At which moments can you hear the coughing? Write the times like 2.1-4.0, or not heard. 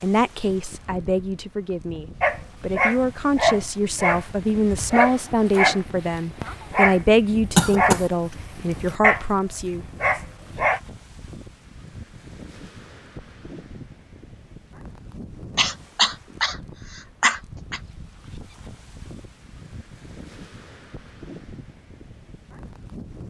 7.5-8.1, 15.6-17.8.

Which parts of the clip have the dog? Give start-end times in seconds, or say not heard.
2.2-10.8.